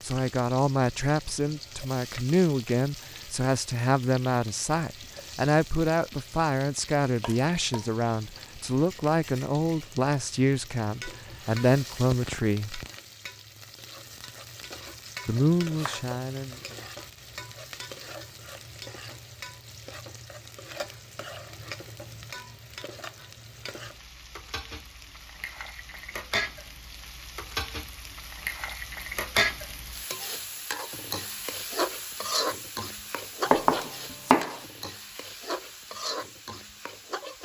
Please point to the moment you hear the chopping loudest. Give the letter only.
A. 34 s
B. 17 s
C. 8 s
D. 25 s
A.